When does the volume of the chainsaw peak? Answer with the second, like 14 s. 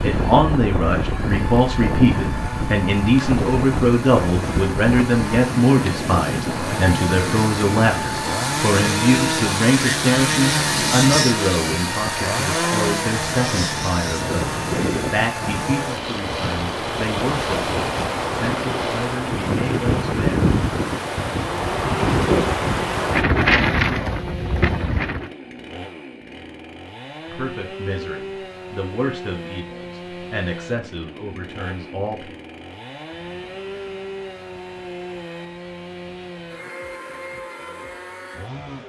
11 s.